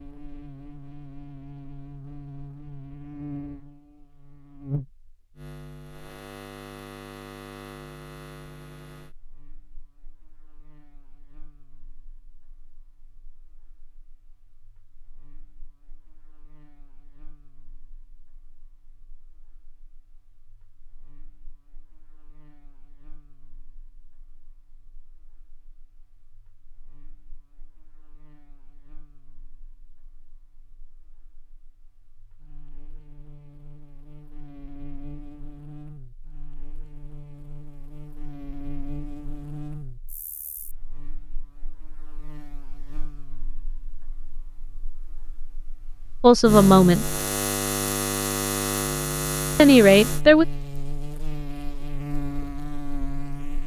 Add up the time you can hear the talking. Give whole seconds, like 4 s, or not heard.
2 s.